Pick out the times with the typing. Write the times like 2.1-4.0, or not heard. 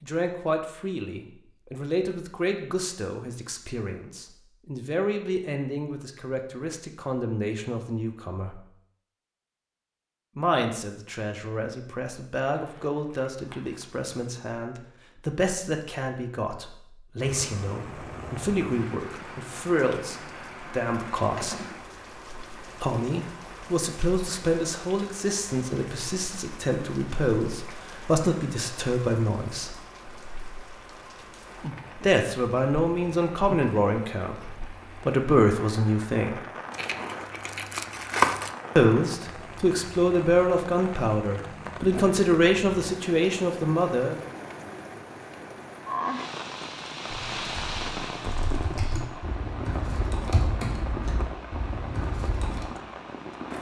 47.1-52.6.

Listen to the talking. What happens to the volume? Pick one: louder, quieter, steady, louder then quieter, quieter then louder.
louder.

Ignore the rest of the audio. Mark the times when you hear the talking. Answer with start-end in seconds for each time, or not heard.
0.0-8.6, 10.3-21.6, 22.8-29.8, 32.0-36.4, 38.8-44.1.